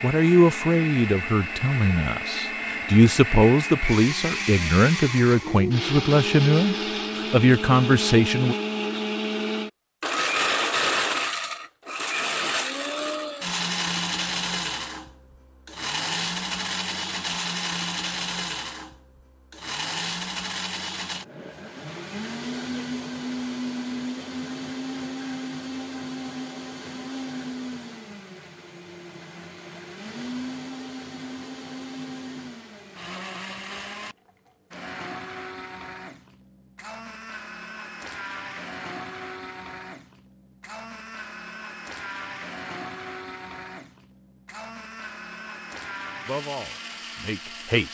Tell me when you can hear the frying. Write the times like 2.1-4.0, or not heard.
not heard.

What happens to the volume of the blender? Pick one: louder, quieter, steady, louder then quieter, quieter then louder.
quieter.